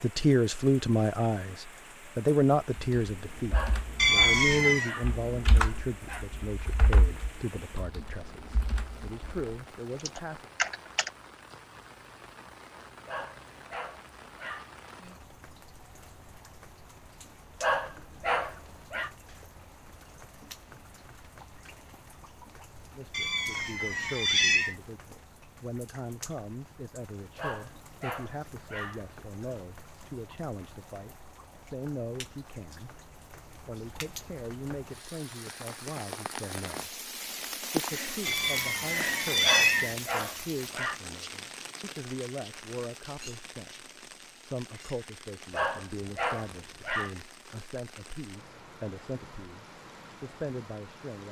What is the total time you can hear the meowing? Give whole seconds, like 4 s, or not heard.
4 s.